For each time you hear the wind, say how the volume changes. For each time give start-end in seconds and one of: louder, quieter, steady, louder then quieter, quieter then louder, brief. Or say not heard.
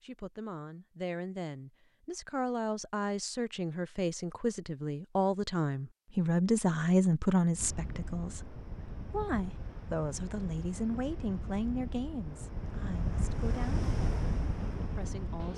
7.5-15.5 louder.